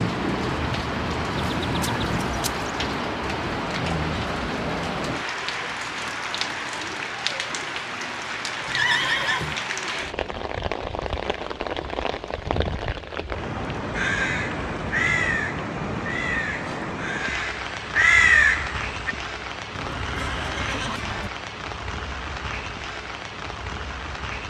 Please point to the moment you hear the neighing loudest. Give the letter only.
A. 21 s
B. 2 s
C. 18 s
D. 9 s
D.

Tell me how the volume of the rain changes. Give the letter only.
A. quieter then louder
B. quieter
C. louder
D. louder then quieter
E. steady
B.